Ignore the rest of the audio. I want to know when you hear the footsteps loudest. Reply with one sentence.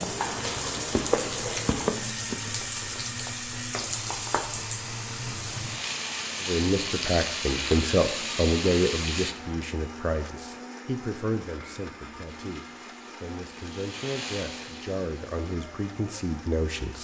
The loudest moment of the footsteps is at 1 second.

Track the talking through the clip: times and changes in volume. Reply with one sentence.
You can hear the talking from 6.4 to 16.9 s, getting quieter.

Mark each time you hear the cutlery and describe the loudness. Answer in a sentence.
You can't hear the cutlery here.